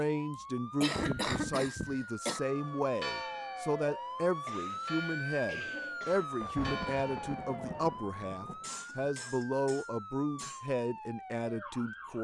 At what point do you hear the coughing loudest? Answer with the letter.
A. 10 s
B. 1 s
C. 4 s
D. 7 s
B.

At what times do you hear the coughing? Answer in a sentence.
You can hear the coughing from 0.3 to 2.4 s, from 4.5 to 6.3 s and from 8.6 to 10.7 s.